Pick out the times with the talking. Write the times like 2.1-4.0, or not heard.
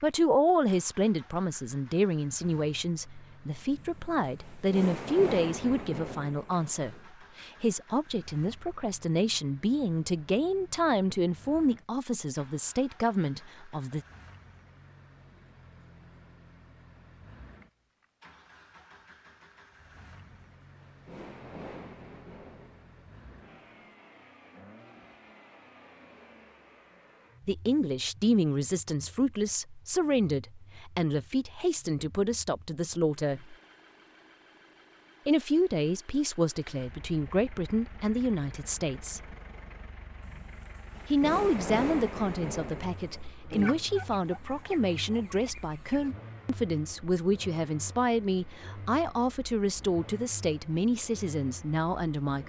0.0-14.1, 27.4-33.5, 35.2-39.3, 41.1-52.4.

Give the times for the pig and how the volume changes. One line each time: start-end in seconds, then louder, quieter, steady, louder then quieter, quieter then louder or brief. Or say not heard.
not heard.